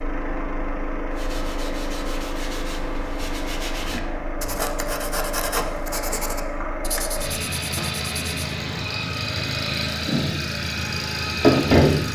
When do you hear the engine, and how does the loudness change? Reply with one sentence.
You can hear the engine from 0.0 to 12.1 s, getting louder.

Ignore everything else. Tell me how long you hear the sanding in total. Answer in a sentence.
The sanding can be heard for 7 seconds in total.